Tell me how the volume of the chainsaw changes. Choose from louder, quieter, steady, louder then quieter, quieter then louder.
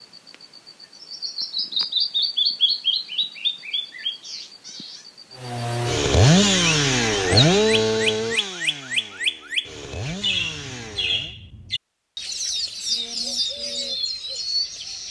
quieter then louder.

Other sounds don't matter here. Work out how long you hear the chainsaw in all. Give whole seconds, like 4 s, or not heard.
6 s.